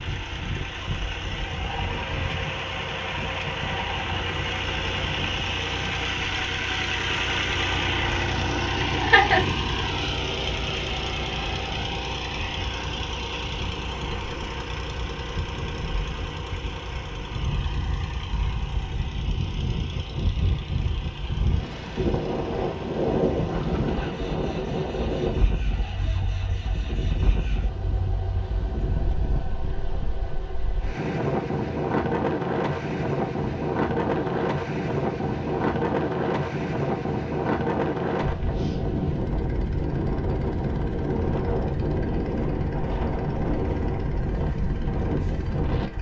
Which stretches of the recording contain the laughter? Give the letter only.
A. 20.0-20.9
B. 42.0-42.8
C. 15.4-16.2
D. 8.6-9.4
D.